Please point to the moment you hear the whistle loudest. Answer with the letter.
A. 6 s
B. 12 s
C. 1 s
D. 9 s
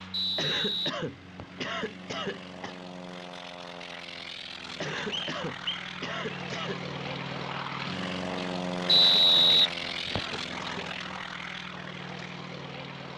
D.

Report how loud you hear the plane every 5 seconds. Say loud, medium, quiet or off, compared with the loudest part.
medium, loud, loud.